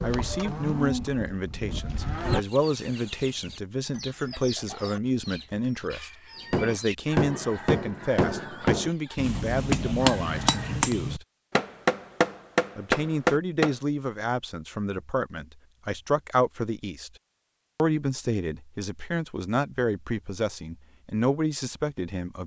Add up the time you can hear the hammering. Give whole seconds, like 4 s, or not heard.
7 s.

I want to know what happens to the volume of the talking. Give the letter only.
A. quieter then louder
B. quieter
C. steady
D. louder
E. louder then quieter
C.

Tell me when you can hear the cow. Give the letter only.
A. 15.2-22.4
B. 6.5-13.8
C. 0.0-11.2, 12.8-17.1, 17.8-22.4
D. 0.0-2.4
D.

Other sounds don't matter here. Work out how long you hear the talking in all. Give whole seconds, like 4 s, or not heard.
20 s.